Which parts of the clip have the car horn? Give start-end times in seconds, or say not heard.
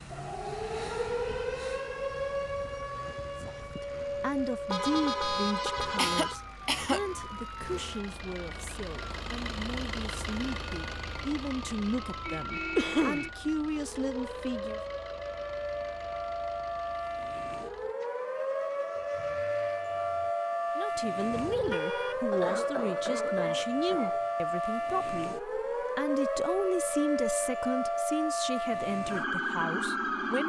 4.7-6.4, 12.2-13.3, 21.3-22.2.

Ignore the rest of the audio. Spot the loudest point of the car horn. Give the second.
5 s.